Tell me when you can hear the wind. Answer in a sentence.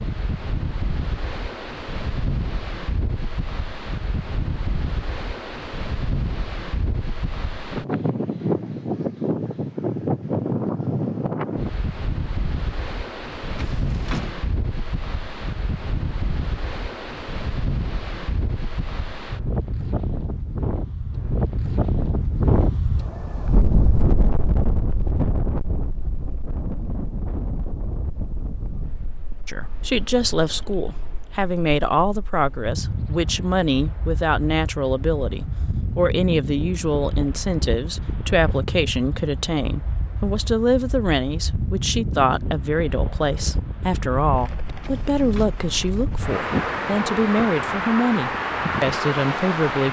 The wind can be heard from 0.0 to 49.8 s.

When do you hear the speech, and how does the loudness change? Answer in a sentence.
The speech can be heard from 29.4 to 49.8 s, at a steady volume.